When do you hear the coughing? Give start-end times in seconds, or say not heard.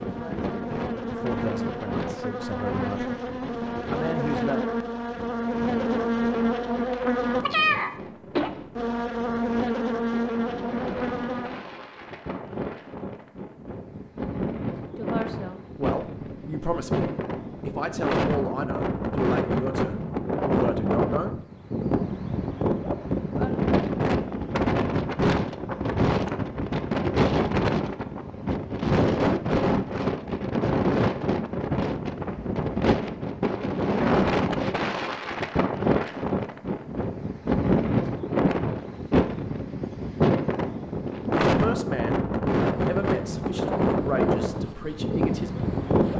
not heard.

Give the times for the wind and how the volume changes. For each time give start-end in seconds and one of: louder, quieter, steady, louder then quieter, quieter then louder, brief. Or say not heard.
0.0-46.1 louder.